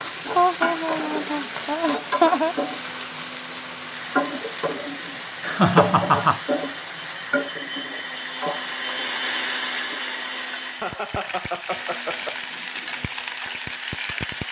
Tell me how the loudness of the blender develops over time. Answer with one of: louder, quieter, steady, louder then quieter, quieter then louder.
louder then quieter.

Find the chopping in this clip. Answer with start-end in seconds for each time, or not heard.
not heard.